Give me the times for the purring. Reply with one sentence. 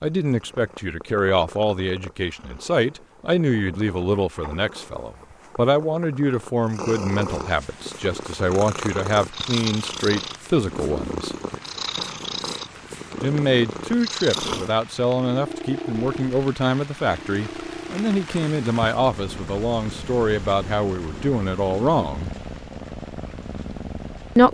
The purring can be heard from 0.0 to 24.4 s.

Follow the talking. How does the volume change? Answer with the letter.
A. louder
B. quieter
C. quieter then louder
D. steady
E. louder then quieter
D.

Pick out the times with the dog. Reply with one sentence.
You can't hear the dog here.